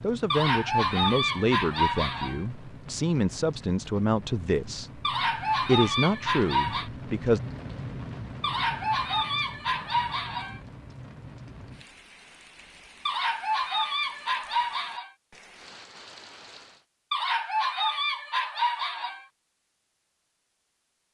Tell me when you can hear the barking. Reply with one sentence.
The barking can be heard from 0.3 to 2.4 s, from 5.0 to 6.9 s, from 8.4 to 10.6 s, from 13.1 to 15.1 s and from 17.1 to 19.2 s.